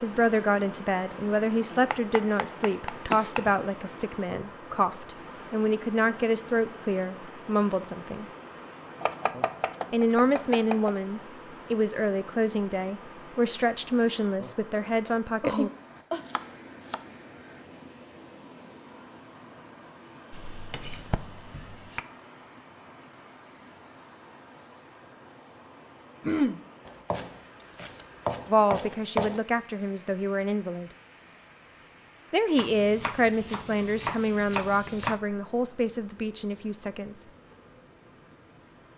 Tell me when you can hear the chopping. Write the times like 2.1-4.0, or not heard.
1.7-3.5, 9.0-10.9, 16.2-17.0, 20.3-22.0, 26.9-29.4, 32.5-35.2.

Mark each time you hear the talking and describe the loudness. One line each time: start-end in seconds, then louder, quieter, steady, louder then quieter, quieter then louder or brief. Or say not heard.
0.0-8.2 steady
9.9-15.7 steady
28.4-30.9 brief
32.3-37.2 quieter.